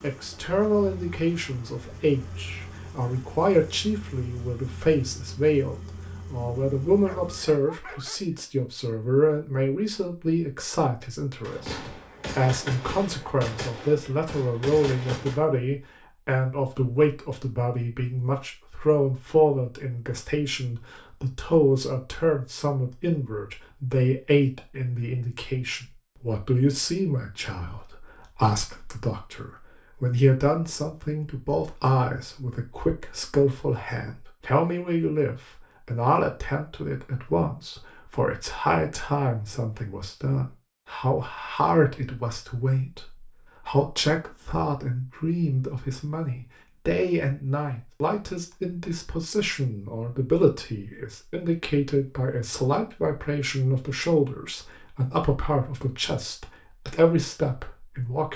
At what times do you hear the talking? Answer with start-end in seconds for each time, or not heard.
0.0-58.3.